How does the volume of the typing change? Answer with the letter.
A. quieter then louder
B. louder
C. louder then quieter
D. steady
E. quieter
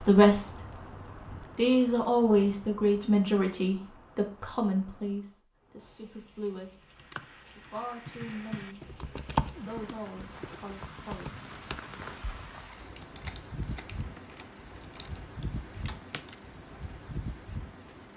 C.